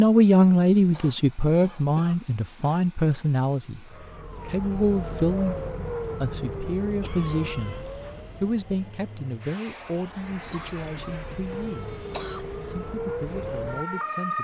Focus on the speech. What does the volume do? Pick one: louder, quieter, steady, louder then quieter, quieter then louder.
quieter.